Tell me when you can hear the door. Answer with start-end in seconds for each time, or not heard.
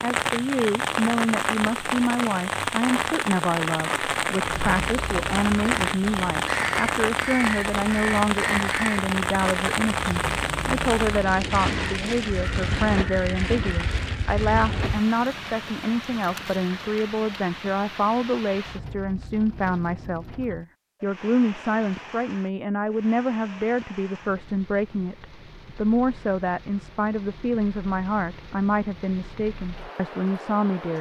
not heard.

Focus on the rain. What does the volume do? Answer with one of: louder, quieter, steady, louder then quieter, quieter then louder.
quieter.